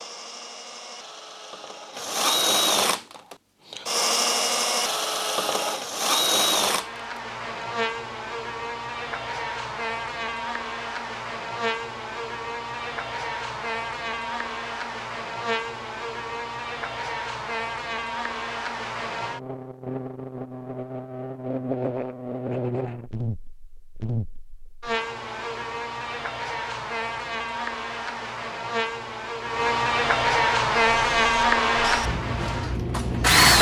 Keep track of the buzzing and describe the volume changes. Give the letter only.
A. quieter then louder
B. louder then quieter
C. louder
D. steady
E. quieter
C.